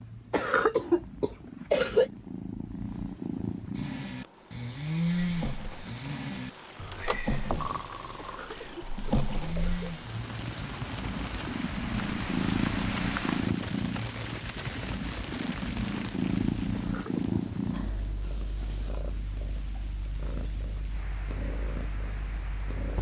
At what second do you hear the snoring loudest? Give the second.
5 s.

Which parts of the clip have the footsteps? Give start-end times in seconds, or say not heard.
not heard.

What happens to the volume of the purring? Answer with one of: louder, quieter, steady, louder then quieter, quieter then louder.
louder then quieter.